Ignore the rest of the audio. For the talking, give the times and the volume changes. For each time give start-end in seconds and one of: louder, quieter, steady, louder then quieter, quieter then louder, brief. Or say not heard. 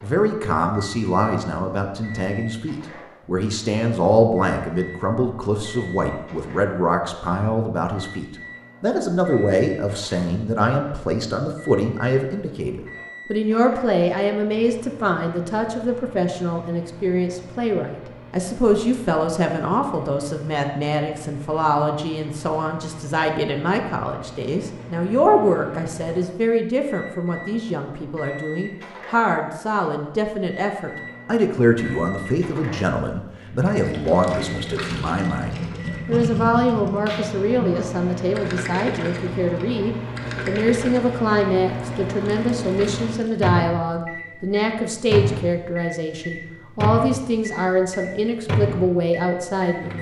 0.0-49.9 steady.